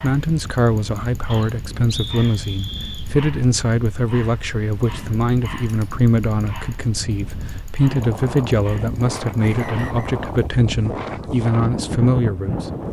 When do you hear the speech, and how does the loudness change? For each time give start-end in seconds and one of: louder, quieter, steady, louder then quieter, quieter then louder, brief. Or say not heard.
0.0-12.7 steady.